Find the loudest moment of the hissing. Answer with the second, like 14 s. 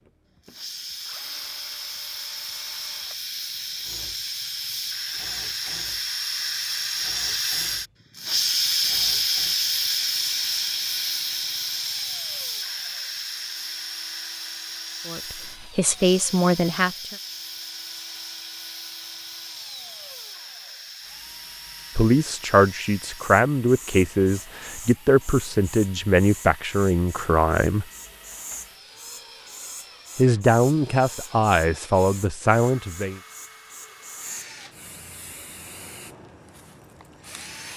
9 s.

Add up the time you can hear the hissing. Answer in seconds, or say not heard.
37 s.